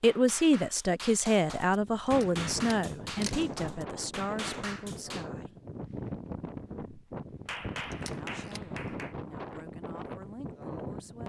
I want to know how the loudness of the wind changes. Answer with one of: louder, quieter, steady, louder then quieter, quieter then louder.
steady.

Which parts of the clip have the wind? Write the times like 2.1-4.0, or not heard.
1.6-11.2.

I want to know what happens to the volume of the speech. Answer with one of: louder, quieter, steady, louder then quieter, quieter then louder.
quieter.